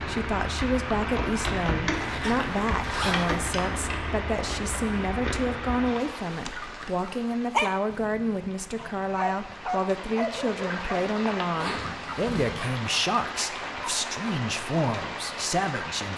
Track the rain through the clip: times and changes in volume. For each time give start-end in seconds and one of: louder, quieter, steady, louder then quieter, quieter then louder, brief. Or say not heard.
0.0-16.1 quieter then louder.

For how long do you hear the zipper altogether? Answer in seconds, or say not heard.
2 s.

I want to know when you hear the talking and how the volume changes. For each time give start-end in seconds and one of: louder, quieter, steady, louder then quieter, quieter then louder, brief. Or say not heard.
0.0-16.1 steady.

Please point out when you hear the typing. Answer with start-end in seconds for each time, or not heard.
0.0-5.5.